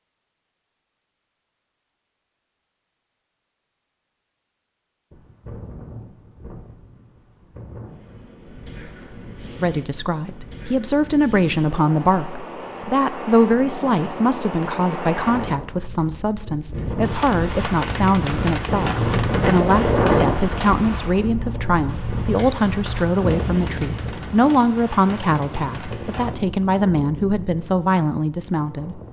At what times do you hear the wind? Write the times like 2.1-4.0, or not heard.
5.1-29.0.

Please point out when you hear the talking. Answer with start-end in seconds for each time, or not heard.
9.6-29.0.